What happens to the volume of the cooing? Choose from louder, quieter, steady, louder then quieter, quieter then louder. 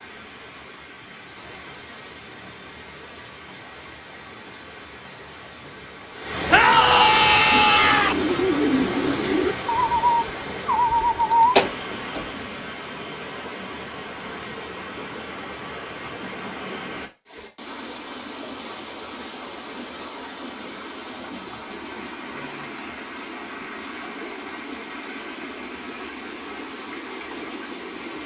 louder.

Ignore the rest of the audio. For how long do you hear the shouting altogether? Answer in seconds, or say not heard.
2 s.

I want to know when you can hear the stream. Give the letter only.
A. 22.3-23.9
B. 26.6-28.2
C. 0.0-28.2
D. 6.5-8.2
C.